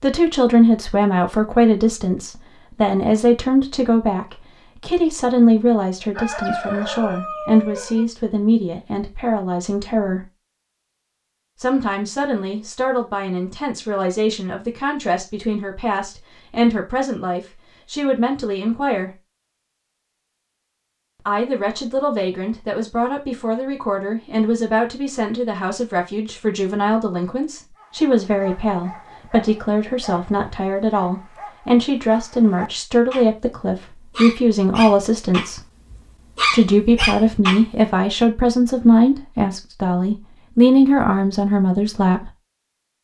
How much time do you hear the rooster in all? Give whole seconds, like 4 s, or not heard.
2 s.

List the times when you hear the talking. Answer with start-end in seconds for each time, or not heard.
0.0-10.2, 11.6-19.1, 21.2-35.6, 36.5-42.3.